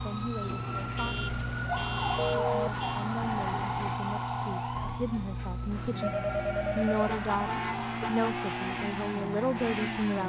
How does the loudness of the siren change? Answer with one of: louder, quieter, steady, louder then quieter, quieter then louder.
quieter.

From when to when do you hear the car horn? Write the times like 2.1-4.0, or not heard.
0.9-3.0, 7.0-8.2.